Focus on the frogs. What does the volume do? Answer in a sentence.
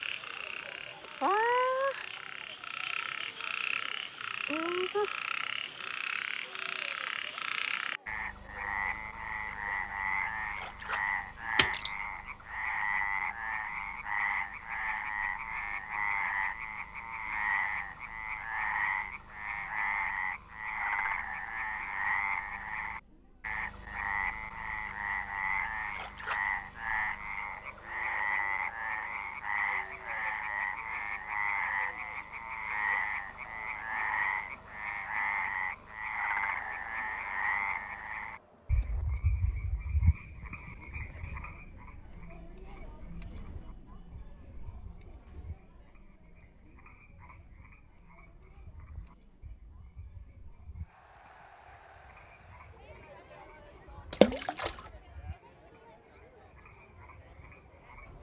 The volume of the frogs goes down.